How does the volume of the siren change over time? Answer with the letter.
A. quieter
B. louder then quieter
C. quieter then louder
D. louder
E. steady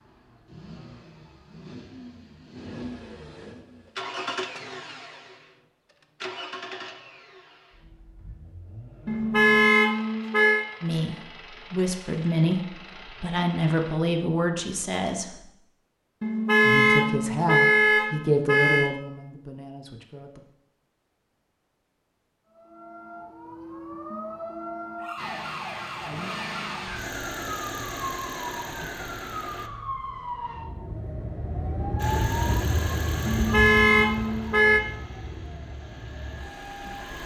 B.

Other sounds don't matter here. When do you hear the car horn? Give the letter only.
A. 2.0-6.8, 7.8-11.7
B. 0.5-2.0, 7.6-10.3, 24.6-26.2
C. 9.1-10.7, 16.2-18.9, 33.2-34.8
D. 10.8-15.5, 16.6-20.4
C.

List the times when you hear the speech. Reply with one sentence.
You can hear the speech from 10.8 to 15.5 s and from 16.6 to 20.4 s.